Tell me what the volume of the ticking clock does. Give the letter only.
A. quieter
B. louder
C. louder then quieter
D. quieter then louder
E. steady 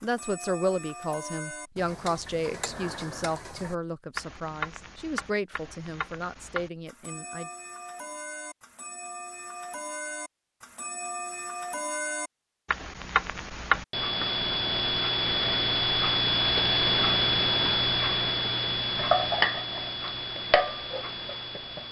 B.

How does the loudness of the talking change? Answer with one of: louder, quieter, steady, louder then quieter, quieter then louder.
quieter.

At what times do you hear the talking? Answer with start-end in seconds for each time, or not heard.
0.0-7.5.